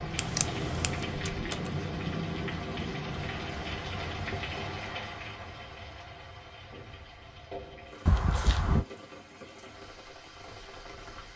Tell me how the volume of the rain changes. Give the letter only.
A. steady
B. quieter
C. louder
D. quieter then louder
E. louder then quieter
B.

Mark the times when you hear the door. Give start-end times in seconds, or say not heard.
1.1-1.8, 8.1-8.8.